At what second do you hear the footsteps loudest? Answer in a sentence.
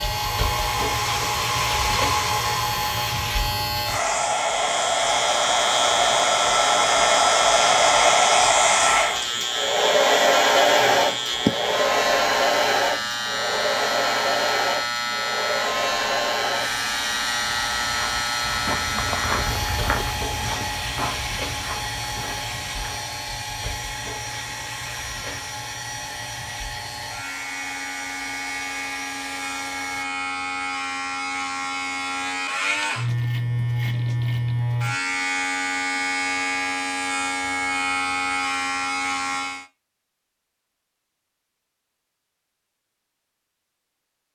The loudest moment of the footsteps is at 19 seconds.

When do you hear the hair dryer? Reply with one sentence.
You can hear the hair dryer from 0.0 to 30.1 s.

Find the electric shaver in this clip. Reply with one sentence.
You can hear the electric shaver from 0.0 to 39.6 s.